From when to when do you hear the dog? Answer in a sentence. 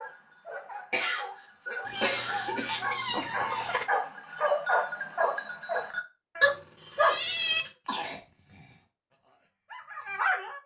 The dog can be heard from 0.0 to 6.5 s and from 9.1 to 10.6 s.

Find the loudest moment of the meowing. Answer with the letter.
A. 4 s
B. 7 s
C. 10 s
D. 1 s
B.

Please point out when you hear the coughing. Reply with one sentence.
The coughing can be heard from 0.9 to 2.9 s and from 7.8 to 8.8 s.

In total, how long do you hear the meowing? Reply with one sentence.
The meowing can be heard for 3 seconds in total.